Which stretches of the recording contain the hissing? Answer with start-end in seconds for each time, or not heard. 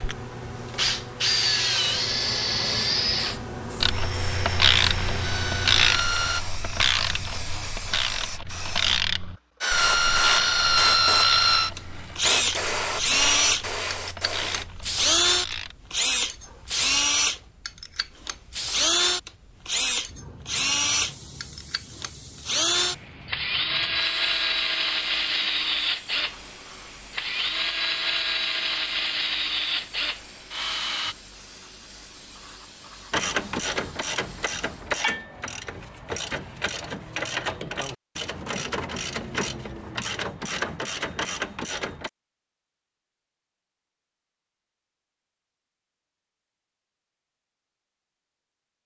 0.0-34.9.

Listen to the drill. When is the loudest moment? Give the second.
11 s.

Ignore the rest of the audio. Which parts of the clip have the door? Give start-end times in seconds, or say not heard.
not heard.